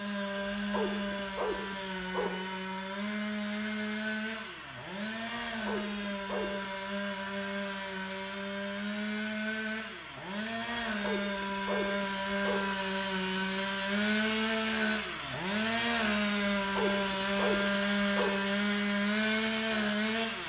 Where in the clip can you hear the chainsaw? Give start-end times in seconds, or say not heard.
0.0-20.4.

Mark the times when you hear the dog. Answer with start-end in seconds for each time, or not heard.
0.6-2.4, 5.5-6.7, 10.9-12.7, 16.6-18.4.